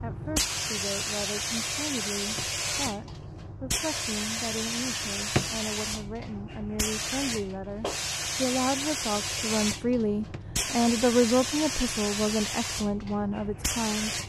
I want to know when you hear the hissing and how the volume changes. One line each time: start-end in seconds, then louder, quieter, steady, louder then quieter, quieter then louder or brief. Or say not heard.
0.0-14.2 steady.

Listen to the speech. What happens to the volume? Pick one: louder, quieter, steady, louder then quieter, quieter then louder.
louder.